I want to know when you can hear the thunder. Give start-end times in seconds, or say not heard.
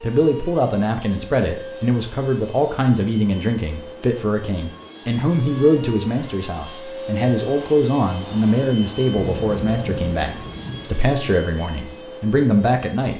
9.1-11.0.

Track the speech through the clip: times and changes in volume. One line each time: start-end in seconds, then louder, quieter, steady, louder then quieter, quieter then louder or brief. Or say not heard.
0.0-13.1 steady.